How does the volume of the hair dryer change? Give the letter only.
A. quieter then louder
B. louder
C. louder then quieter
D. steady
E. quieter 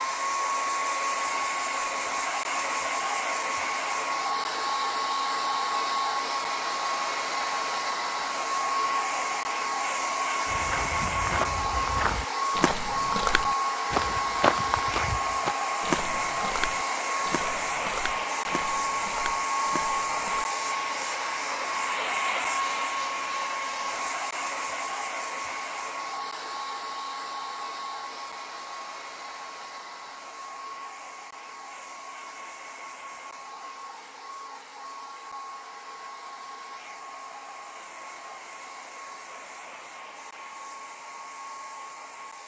E.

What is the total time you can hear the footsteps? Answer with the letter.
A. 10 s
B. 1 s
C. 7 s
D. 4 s
A.